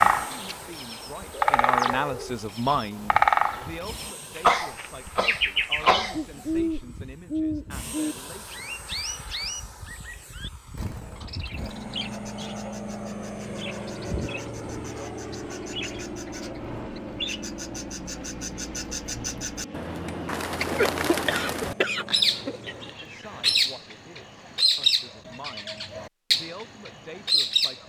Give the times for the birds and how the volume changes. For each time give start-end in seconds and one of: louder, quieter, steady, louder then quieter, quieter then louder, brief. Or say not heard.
0.0-27.8 quieter then louder.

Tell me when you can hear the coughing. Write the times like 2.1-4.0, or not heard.
4.4-6.4, 20.8-22.8.